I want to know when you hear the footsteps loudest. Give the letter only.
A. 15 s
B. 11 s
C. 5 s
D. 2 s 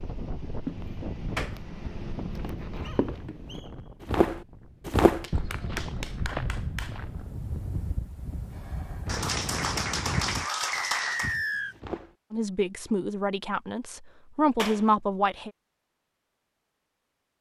C.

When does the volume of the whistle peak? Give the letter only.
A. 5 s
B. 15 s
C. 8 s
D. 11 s
D.